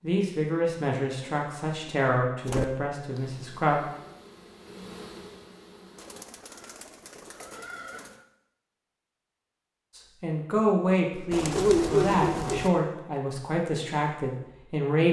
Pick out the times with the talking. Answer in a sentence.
You can hear the talking from 0.0 to 3.8 s and from 9.9 to 15.0 s.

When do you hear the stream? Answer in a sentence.
You can't hear the stream here.